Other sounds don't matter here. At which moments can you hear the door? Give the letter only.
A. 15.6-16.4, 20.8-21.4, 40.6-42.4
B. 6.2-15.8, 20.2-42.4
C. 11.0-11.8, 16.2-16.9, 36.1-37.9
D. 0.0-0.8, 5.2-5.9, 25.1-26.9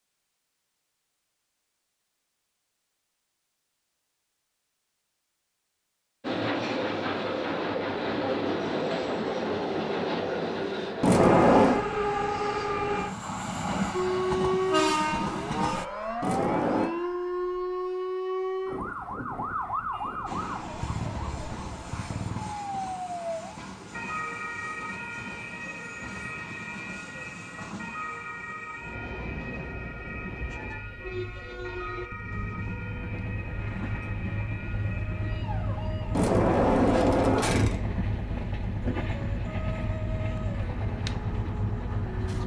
C.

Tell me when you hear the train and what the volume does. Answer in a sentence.
The train can be heard from 6.2 to 15.8 s, at a steady volume; and from 20.2 to 42.4 s, getting louder.